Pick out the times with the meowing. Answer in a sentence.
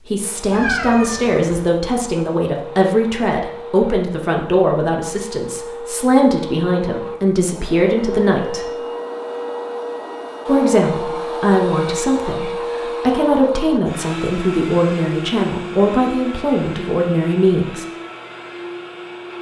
The meowing can be heard from 0.5 to 1.6 s.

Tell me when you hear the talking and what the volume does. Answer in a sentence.
The talking can be heard from 0.1 to 8.7 s, at a steady volume; and from 10.4 to 17.9 s, at a steady volume.